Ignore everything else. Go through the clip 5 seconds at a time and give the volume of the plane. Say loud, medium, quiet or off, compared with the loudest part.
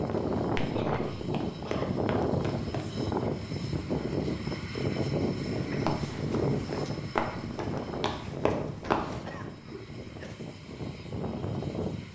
loud, loud, medium.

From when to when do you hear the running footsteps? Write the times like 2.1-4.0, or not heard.
0.1-2.9, 5.7-9.2.